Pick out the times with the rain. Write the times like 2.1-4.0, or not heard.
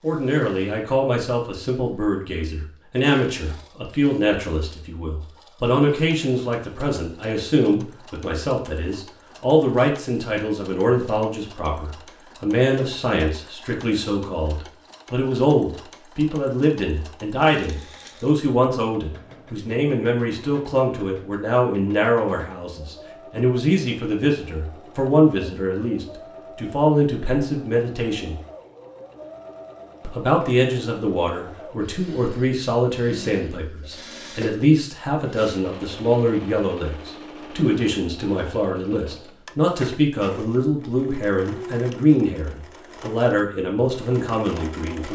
not heard.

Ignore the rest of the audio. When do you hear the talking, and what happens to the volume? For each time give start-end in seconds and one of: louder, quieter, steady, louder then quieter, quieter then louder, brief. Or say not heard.
0.0-28.4 steady
30.0-45.1 steady.